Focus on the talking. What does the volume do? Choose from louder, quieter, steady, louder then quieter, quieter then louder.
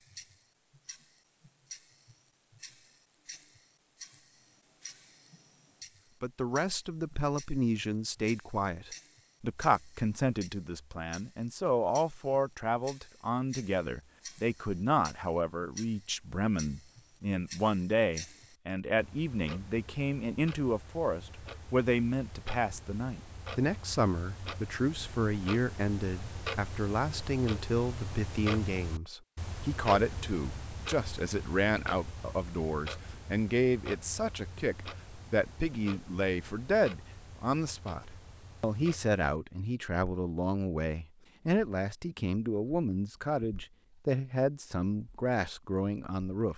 steady.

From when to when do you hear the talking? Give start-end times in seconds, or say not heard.
6.2-46.5.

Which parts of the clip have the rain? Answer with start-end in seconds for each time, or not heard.
not heard.